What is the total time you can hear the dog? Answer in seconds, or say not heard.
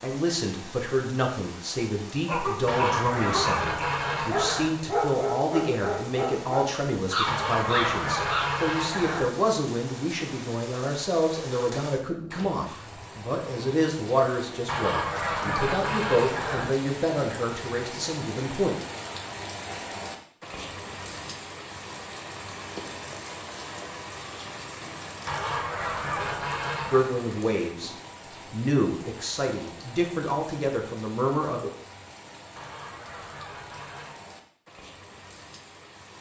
6 s.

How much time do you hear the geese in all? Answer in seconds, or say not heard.
10 s.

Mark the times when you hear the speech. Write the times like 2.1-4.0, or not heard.
0.0-18.8, 26.9-31.7.